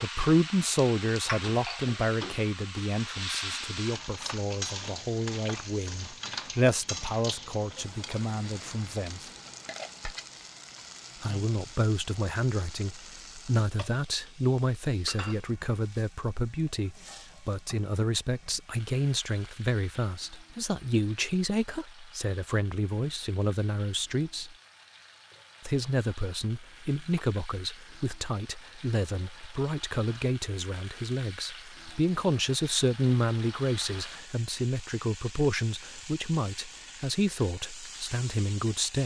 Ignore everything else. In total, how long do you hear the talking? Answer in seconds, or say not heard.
36 s.